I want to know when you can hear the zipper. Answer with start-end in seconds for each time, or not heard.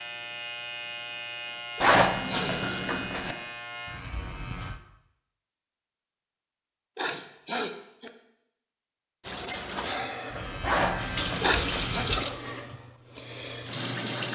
1.8-3.4, 10.6-12.1.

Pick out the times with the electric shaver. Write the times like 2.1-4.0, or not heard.
0.0-4.8, 10.3-12.2.